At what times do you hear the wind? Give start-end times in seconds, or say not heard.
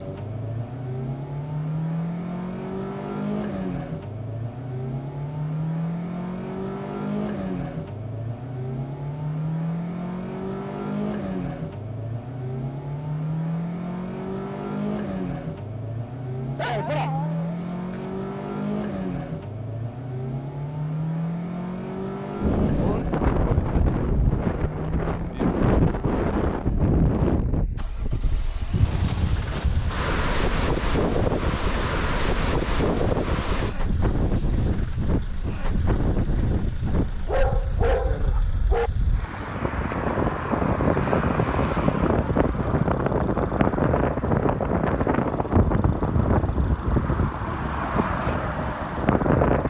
22.4-49.6.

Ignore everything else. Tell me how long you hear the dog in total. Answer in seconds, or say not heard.
3 s.